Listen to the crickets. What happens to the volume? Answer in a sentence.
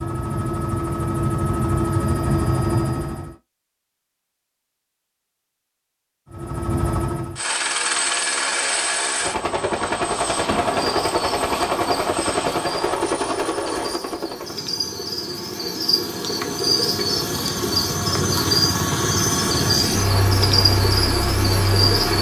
The volume of the crickets goes up.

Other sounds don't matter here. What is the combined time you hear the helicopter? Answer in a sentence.
The helicopter can be heard for 19 seconds in total.